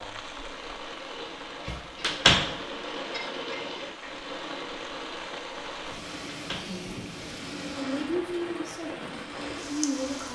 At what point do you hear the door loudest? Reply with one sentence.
The volume of the door peaks at 2 seconds.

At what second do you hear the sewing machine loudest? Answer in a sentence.
The volume of the sewing machine peaks at 3 seconds.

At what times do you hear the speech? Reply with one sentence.
You can hear the speech from 6.6 to 7.0 s and from 7.8 to 10.2 s.